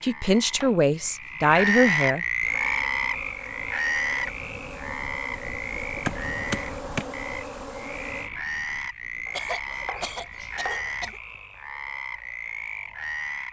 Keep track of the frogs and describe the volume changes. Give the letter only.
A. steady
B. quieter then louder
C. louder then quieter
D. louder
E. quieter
E.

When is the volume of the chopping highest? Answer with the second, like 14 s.
6 s.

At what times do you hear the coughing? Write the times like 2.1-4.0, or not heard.
9.3-11.2.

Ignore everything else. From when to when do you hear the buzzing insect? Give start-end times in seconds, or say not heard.
2.4-8.3.